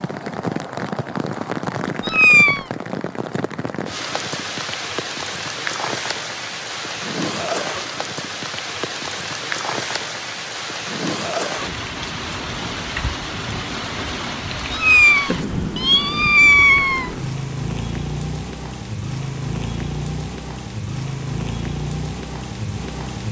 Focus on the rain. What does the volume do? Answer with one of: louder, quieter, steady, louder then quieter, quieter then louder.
steady.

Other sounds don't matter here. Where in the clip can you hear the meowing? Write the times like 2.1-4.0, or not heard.
2.0-2.6, 14.7-17.1.